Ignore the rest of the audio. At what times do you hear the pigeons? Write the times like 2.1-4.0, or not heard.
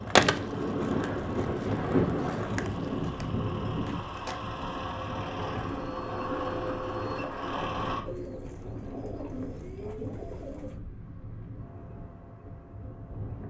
8.1-10.8.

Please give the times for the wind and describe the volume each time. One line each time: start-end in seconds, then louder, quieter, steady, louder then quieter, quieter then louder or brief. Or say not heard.
0.0-13.4 quieter.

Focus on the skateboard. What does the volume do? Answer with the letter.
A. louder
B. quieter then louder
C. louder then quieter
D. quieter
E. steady
C.